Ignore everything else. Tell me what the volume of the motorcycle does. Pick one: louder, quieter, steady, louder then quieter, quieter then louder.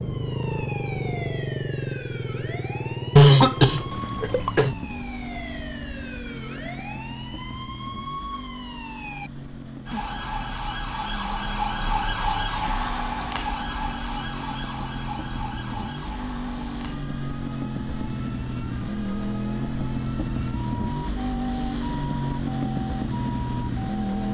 quieter then louder.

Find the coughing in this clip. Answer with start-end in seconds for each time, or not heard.
3.1-4.8.